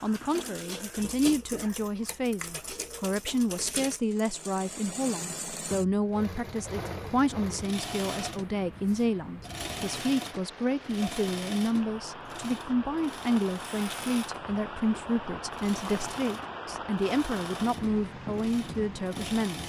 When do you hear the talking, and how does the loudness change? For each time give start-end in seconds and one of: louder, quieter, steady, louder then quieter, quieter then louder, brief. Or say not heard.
0.0-19.6 steady.